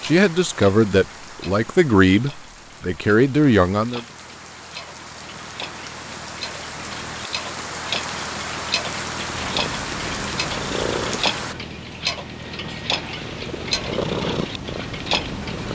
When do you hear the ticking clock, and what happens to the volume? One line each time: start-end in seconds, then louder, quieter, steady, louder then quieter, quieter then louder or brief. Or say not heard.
0.0-15.7 louder.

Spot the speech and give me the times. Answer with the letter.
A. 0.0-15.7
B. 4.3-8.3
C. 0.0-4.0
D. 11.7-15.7
C.